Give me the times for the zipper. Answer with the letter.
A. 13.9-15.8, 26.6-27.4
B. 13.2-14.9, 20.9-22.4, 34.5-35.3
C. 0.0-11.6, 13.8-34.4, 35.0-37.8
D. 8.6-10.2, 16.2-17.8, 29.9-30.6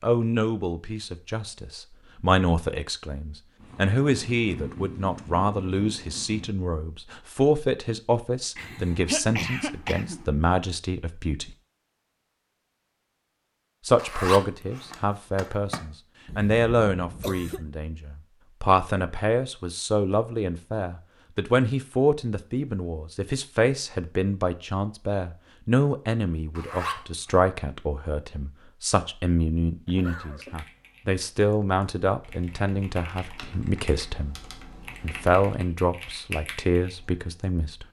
A.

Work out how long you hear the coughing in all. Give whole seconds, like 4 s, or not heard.
4 s.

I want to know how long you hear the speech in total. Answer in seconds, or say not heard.
35 s.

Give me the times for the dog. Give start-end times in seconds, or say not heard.
not heard.